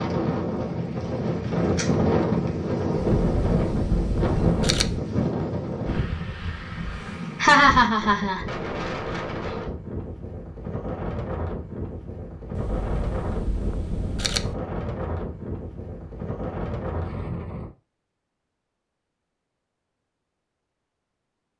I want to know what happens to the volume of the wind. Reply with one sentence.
The loudness of the wind goes down.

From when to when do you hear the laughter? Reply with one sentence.
You can hear the laughter from 7.4 to 8.4 s.